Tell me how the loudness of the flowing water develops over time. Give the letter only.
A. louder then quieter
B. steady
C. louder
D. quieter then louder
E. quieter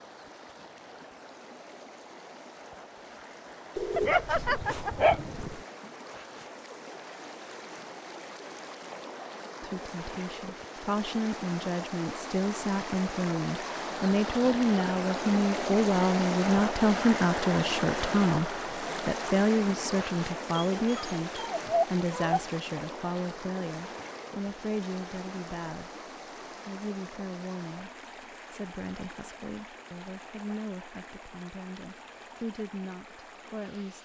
A.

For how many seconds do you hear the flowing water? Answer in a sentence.
The flowing water can be heard for 34 seconds in total.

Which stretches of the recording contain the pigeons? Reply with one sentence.
The pigeons can be heard from 3.8 to 5.7 s.